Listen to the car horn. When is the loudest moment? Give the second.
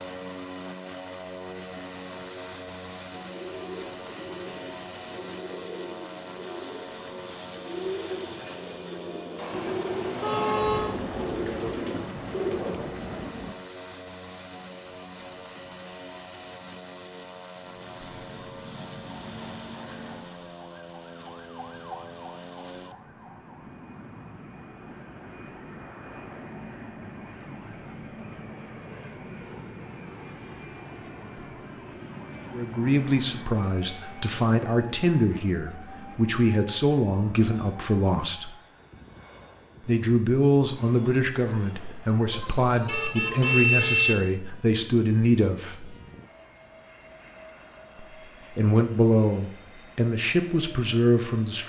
44 s.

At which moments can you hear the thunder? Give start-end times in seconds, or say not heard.
9.5-13.6.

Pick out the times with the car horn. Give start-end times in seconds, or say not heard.
9.3-10.9, 42.3-44.1.